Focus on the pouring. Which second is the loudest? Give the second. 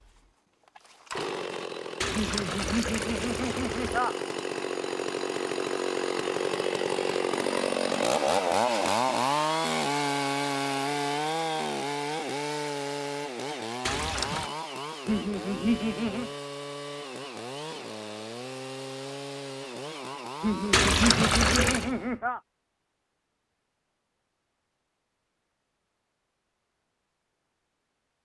21 s.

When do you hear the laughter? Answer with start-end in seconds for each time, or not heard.
2.1-4.2, 15.1-16.3, 20.4-22.4.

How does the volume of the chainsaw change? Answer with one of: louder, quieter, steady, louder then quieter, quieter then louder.
louder then quieter.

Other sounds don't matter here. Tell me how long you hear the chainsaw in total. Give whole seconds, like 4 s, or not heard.
22 s.